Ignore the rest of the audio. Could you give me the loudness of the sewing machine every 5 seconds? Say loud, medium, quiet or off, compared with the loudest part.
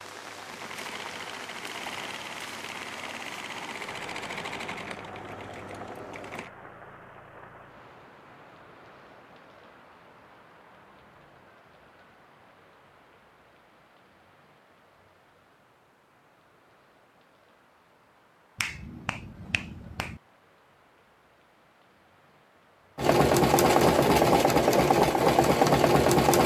quiet, quiet, off, off, loud, loud.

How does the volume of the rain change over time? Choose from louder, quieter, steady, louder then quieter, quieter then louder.
quieter.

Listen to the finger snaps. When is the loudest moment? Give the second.
19 s.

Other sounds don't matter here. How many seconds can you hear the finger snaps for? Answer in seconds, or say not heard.
2 s.